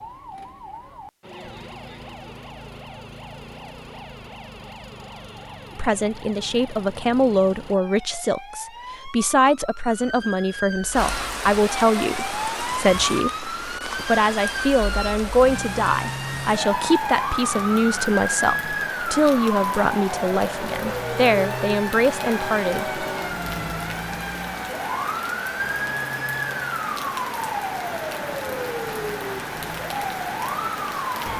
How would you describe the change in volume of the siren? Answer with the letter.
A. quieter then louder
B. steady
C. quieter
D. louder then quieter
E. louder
E.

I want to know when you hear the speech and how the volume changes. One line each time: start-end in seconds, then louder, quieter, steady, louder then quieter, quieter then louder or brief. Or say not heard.
5.8-23.0 steady.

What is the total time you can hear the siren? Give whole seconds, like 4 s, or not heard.
31 s.